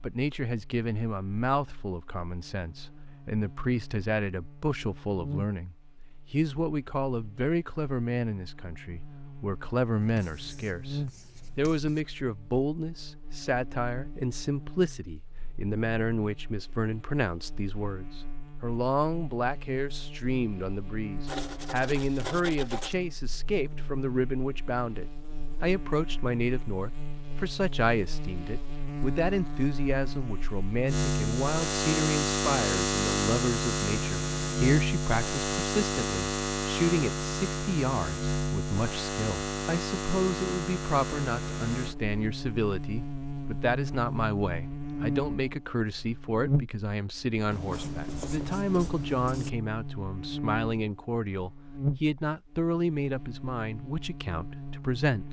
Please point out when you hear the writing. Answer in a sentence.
You can hear the writing from 10.0 to 12.0 s, from 21.2 to 22.9 s and from 47.5 to 49.5 s.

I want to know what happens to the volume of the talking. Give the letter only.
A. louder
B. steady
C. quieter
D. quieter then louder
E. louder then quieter
B.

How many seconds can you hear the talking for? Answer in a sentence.
The talking can be heard for 55 seconds in total.